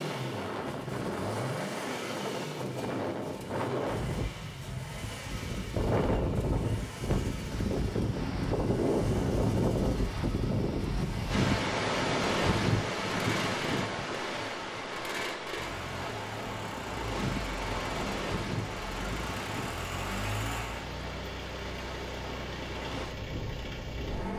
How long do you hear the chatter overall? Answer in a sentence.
You can't hear the chatter here.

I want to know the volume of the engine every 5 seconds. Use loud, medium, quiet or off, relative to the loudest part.
loud, medium, loud, loud, loud.